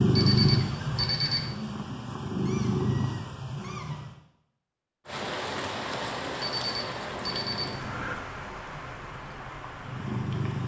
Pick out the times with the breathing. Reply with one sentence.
You can't hear the breathing here.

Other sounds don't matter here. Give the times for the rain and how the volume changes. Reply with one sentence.
You can hear the rain from 5.0 to 10.6 s, getting quieter.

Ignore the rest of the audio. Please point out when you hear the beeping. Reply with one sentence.
The beeping can be heard from 0.1 to 1.5 s and from 6.4 to 8.2 s.